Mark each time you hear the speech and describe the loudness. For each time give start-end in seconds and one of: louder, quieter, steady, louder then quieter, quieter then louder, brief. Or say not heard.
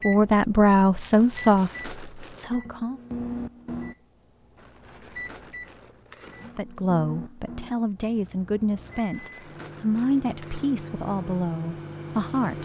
0.1-3.0 brief
6.5-12.6 steady.